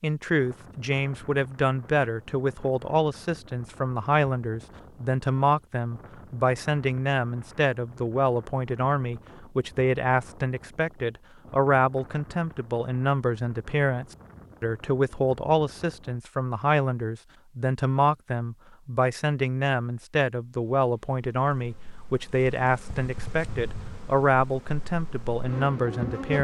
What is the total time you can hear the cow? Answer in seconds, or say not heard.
not heard.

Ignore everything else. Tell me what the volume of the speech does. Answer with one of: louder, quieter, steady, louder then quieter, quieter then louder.
steady.